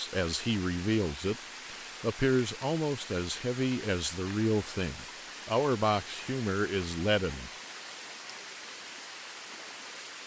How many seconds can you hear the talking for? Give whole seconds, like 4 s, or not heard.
7 s.